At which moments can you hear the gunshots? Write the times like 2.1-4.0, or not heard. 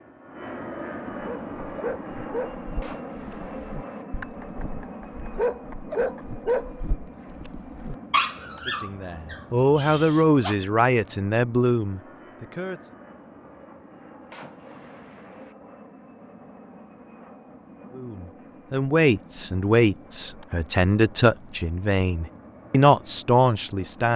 2.8-4.0, 14.3-15.6.